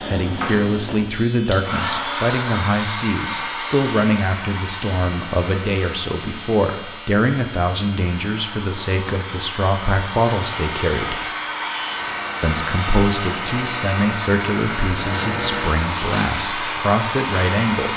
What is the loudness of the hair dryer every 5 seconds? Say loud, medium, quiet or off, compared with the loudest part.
loud, medium, loud, loud.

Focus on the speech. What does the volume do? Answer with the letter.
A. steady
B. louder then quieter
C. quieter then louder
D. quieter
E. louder
A.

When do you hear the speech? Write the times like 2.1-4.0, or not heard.
0.1-11.2, 12.4-17.9.